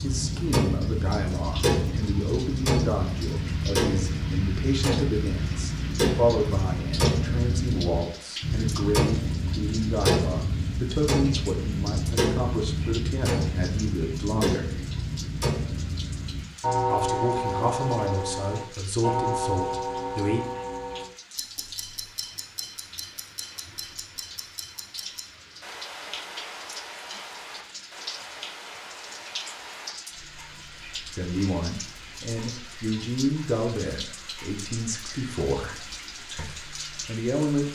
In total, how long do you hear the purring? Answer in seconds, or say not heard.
not heard.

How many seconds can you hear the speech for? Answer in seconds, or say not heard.
25 s.